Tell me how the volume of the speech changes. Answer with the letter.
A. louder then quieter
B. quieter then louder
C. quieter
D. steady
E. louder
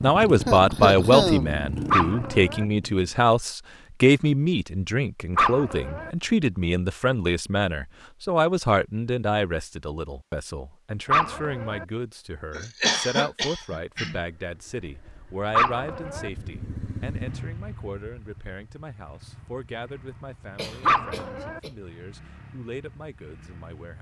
C.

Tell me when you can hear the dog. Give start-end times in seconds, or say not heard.
1.9-2.6, 5.3-6.1, 11.1-11.8, 15.5-16.3, 20.9-21.6.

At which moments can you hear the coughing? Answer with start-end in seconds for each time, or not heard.
0.5-1.6, 12.6-14.2, 20.6-21.8.